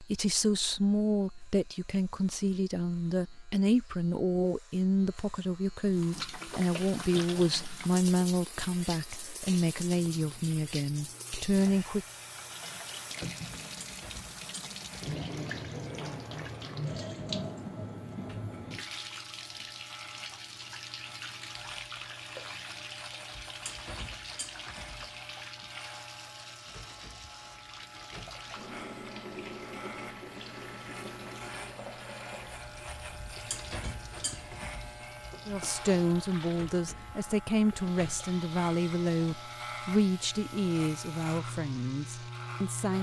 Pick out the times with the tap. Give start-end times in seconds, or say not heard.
5.8-42.9.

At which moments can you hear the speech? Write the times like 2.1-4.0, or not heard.
0.0-12.1, 35.5-42.9.